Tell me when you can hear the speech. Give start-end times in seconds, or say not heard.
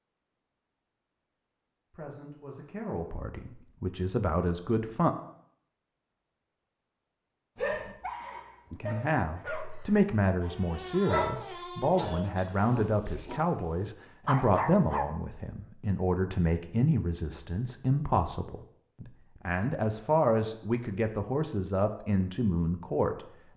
1.9-5.1, 8.7-23.5.